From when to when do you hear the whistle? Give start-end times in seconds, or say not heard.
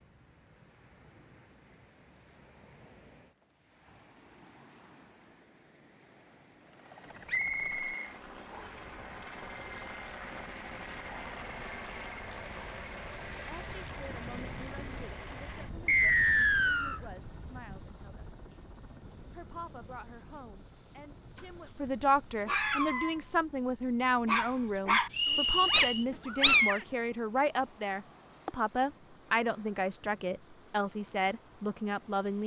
7.2-8.8, 15.8-17.0, 25.1-26.1.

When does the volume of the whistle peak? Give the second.
16 s.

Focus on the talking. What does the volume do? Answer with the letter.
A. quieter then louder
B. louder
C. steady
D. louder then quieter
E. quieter
B.